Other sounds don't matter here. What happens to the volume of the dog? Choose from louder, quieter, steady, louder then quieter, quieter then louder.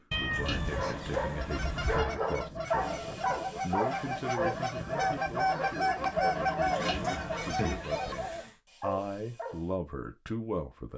quieter.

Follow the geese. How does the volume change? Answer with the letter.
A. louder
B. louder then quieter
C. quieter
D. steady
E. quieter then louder
A.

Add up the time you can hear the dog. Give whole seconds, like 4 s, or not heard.
9 s.